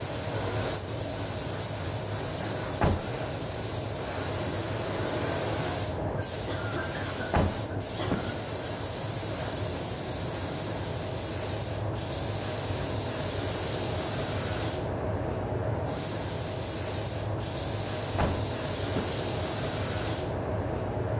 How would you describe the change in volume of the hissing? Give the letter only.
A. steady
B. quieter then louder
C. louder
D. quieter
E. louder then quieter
A.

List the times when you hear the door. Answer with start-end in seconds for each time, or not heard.
2.8-3.2, 7.3-8.3, 18.1-19.2.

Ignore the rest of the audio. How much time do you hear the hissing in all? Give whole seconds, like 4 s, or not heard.
21 s.